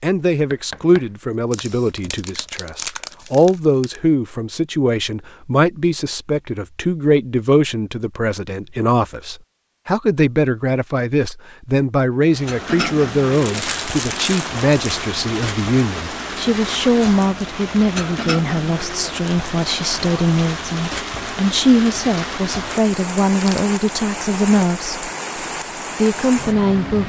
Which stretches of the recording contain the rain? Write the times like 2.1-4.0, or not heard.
12.2-27.0.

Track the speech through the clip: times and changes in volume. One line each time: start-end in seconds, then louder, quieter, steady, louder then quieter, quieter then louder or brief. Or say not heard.
0.0-25.1 steady
25.9-27.0 brief.